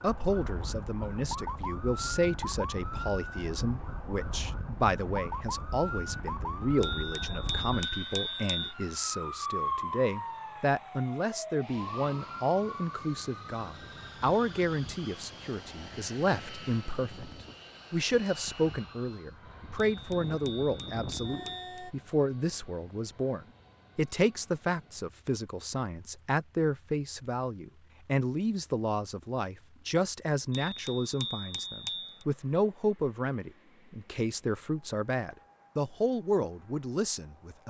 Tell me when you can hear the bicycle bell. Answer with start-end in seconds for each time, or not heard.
6.8-8.8, 19.9-21.9, 30.5-32.2.